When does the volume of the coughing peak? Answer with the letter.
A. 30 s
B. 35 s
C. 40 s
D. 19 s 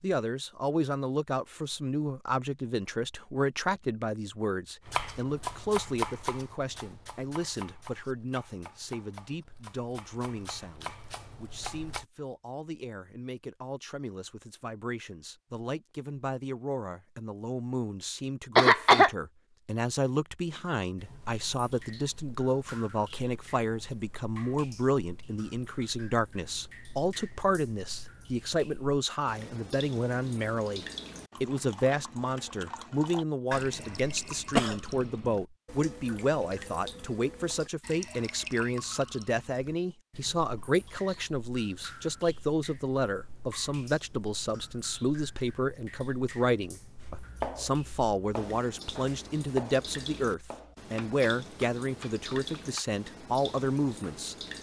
D.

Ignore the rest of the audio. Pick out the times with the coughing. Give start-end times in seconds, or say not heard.
18.6-19.1, 33.5-35.4.